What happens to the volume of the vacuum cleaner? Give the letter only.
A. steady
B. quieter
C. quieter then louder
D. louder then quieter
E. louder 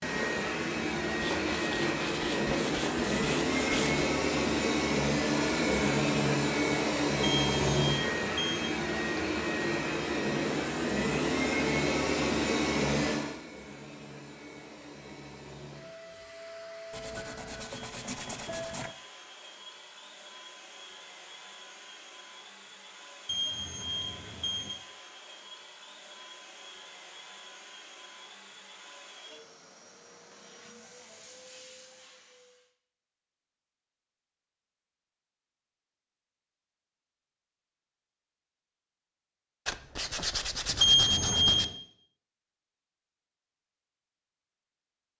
B.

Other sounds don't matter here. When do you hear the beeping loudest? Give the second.
41 s.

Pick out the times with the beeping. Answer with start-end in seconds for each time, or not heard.
7.2-8.7, 23.2-24.7, 40.8-41.6.